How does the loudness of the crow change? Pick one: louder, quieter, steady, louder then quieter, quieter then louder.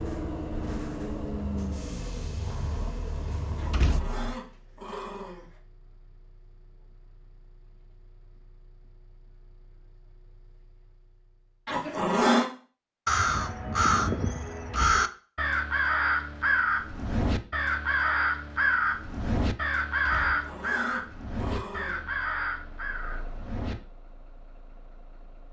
quieter.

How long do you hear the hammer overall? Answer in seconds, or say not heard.
not heard.